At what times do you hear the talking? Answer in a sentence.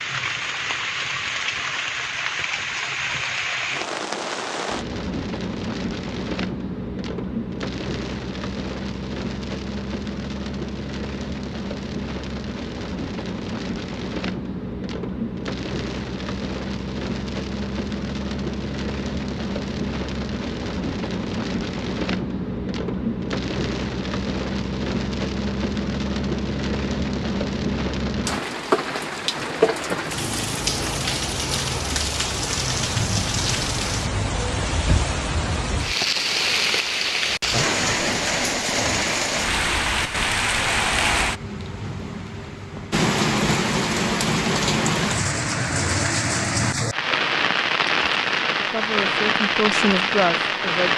The talking can be heard from 48.5 to 50.9 s.